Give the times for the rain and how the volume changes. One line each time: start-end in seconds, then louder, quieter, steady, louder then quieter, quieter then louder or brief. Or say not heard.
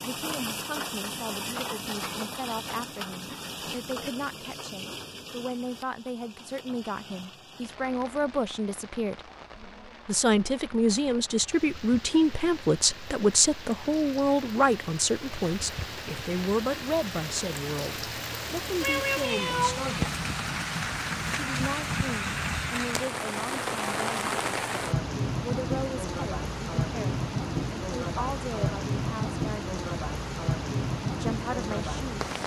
0.0-32.4 quieter then louder.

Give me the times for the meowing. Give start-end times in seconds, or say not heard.
18.8-19.8.